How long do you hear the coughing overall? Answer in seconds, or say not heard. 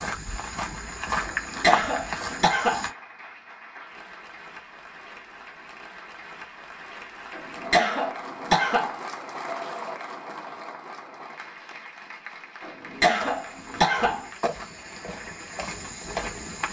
5 s.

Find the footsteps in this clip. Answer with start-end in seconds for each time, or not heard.
0.0-2.9, 13.0-16.6.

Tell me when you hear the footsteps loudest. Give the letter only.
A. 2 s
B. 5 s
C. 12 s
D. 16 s
A.